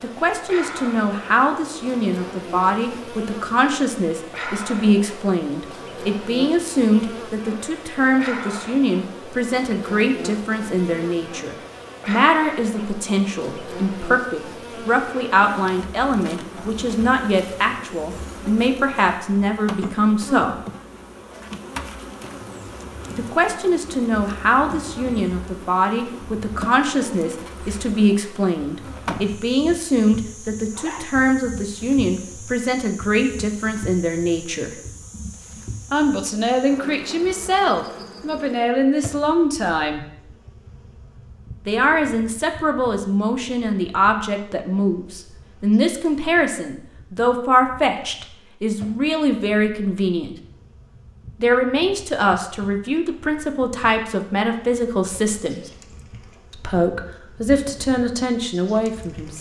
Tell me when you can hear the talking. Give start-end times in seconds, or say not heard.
0.0-20.6, 23.1-34.8, 35.9-40.0, 41.6-50.4, 51.4-55.6, 56.5-59.3.